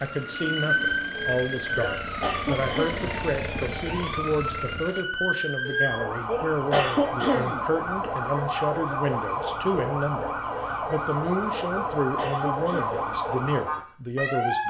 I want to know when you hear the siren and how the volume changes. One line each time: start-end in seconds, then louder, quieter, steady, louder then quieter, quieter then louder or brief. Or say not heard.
0.0-14.6 steady.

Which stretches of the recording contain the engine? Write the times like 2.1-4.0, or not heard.
0.0-5.0.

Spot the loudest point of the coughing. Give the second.
7 s.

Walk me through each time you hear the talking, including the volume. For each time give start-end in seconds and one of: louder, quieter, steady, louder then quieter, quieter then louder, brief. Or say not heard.
0.0-14.6 steady.